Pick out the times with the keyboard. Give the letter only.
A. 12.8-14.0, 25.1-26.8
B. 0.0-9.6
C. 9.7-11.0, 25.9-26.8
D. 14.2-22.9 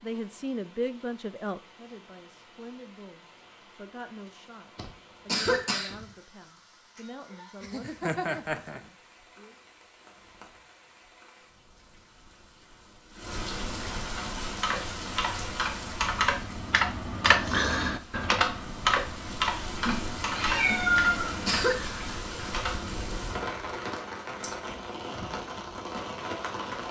D.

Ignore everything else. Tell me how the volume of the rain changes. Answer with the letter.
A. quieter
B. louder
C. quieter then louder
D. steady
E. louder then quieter
B.